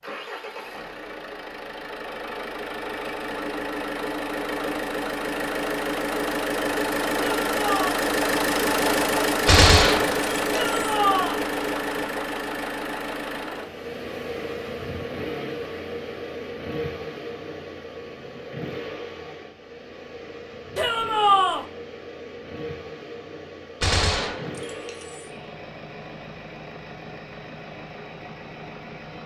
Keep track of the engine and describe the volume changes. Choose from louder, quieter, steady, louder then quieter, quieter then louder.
louder then quieter.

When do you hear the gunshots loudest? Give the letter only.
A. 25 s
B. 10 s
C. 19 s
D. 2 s
B.